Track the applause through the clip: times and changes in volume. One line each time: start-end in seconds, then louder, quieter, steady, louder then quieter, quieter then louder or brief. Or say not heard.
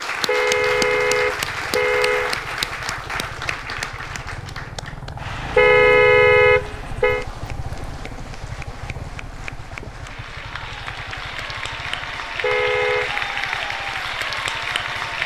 0.0-15.2 quieter then louder.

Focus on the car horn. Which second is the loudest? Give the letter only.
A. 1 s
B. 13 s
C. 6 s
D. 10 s
C.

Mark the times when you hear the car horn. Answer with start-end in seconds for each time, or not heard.
0.2-2.4, 5.5-7.2, 12.4-13.1.